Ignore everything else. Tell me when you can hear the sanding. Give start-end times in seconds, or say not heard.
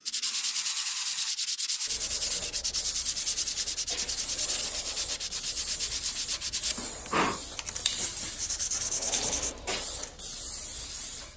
0.1-10.2.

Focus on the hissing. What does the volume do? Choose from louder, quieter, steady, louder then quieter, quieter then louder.
steady.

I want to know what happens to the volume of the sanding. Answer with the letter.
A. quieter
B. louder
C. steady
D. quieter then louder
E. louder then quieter
C.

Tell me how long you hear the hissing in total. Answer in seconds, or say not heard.
11 s.